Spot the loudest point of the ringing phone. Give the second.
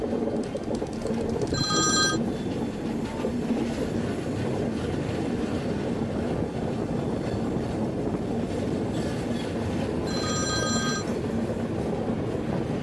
2 s.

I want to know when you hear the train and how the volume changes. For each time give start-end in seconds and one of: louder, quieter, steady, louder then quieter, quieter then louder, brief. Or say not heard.
0.0-12.7 steady.